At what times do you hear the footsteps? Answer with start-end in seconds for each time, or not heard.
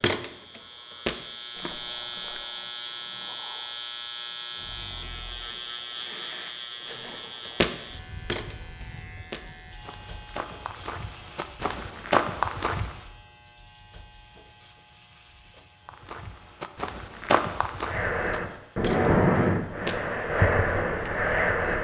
0.0-2.5, 7.5-13.0, 15.8-21.7.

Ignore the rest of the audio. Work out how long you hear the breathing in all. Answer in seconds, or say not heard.
7 s.